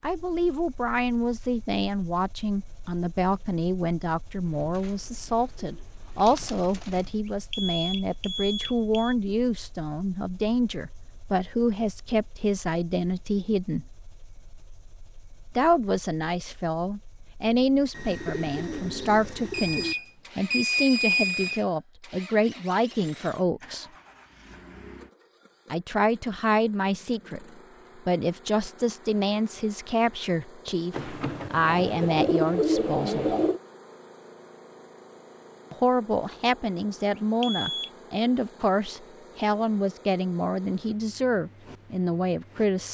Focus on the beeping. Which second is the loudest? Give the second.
21 s.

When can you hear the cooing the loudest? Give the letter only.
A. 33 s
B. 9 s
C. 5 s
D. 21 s
A.